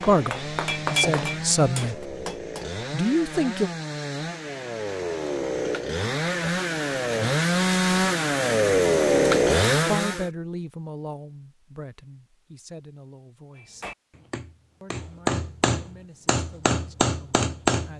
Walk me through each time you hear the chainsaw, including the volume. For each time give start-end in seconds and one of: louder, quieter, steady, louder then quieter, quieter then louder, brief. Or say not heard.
0.0-10.3 louder.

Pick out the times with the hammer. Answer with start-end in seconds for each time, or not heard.
0.0-2.6, 13.6-17.9.